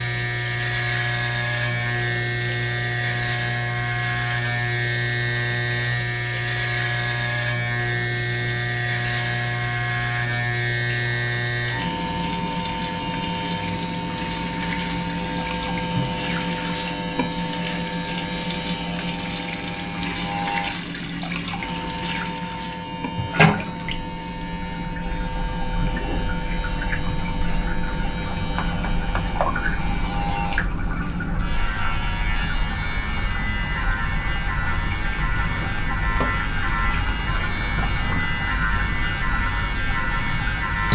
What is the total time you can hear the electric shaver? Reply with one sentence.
You can hear the electric shaver for 41 seconds altogether.